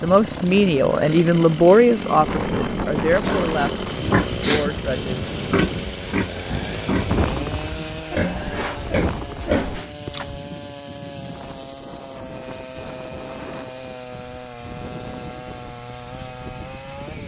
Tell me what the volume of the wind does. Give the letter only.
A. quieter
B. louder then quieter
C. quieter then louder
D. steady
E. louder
A.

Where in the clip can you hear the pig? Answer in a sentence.
The pig can be heard from 3.2 to 10.3 s.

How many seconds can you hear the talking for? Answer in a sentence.
You can hear the talking for 5 seconds altogether.